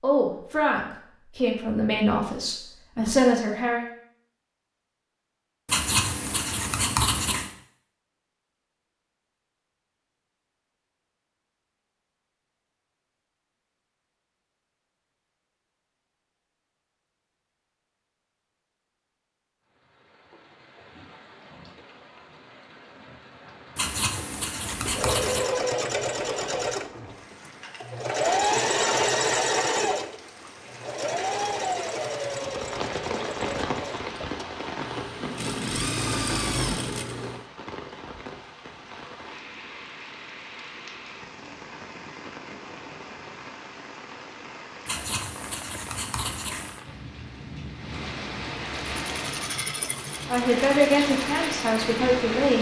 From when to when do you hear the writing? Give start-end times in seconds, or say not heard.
5.7-7.5, 23.8-25.4, 44.9-46.8.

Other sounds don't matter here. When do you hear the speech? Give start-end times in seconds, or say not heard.
0.0-3.9, 50.2-52.5.